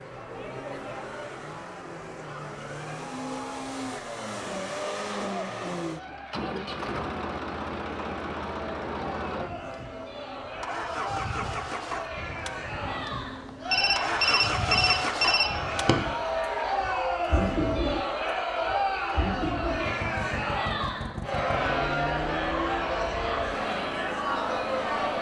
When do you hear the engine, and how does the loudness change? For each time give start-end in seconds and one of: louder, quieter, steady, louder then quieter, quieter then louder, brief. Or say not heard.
0.0-25.1 steady.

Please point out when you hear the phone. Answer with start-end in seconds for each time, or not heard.
13.7-15.9.